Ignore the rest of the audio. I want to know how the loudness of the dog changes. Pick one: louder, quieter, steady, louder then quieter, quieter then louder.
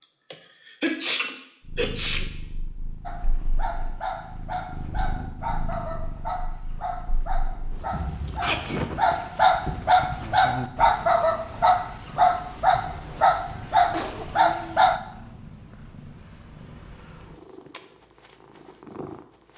louder.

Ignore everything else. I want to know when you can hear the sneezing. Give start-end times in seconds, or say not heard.
0.3-2.3, 8.4-10.2, 13.7-14.8.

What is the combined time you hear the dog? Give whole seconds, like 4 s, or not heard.
12 s.